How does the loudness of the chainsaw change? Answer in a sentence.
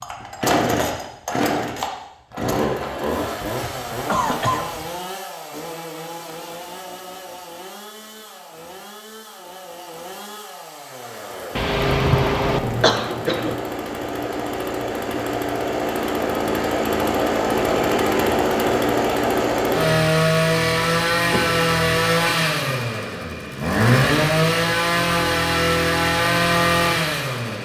The loudness of the chainsaw goes down, then up.